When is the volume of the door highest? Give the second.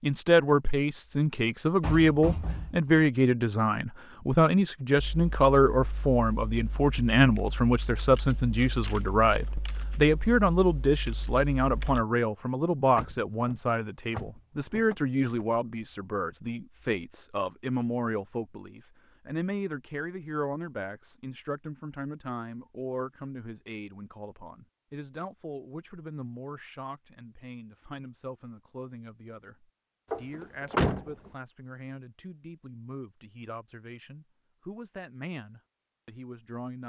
31 s.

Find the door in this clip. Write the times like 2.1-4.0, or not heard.
1.8-3.1, 12.9-15.4, 30.1-31.1.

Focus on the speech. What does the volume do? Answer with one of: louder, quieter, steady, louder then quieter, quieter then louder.
quieter.